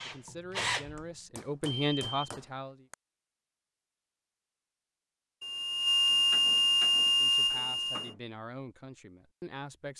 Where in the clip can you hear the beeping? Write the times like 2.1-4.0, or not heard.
1.6-2.1, 5.4-8.1.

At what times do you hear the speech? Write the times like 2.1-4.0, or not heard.
0.0-2.9, 7.2-9.9.